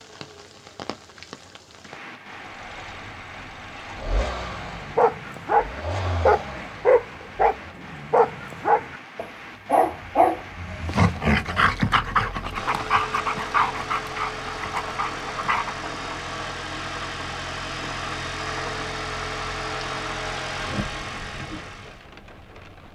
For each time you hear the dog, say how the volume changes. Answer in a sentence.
The dog can be heard from 4.6 to 15.8 s, getting quieter.